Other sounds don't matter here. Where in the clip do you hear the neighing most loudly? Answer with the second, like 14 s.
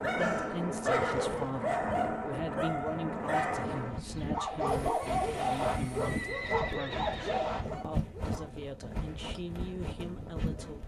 1 s.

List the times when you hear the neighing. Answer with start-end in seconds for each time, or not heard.
0.8-1.7, 6.0-7.4.